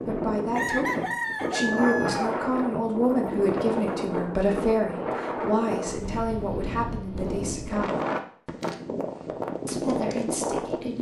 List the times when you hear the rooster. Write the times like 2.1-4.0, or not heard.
0.6-2.3.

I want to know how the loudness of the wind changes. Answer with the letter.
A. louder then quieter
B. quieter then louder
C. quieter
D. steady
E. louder
D.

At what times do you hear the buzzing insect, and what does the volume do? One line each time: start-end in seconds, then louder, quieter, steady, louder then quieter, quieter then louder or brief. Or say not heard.
not heard.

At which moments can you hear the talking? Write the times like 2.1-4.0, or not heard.
0.0-8.0, 9.7-10.9.